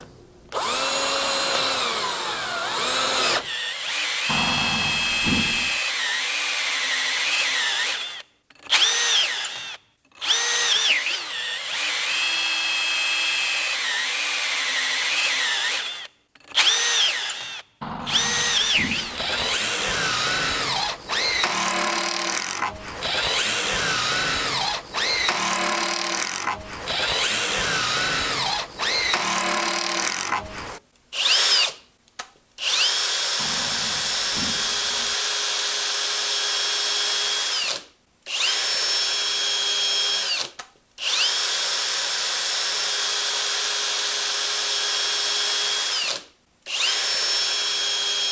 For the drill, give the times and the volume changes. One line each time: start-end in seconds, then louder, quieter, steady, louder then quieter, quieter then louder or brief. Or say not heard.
0.0-48.2 steady.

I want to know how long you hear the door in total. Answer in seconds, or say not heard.
5 s.